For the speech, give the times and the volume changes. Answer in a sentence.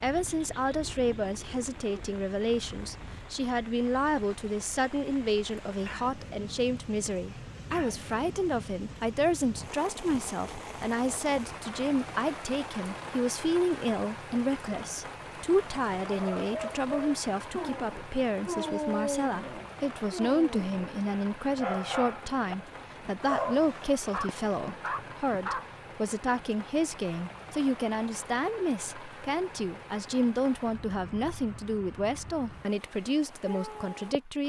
You can hear the speech from 0.0 to 34.4 s, at a steady volume.